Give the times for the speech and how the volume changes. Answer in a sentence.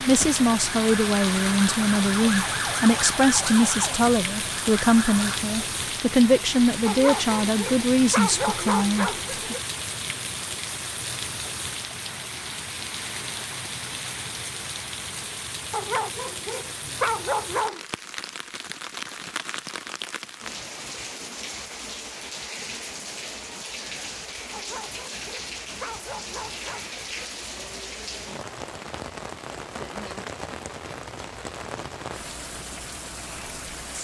The speech can be heard from 0.1 to 9.6 s, at a steady volume.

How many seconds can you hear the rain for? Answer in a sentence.
The rain can be heard for 34 seconds in total.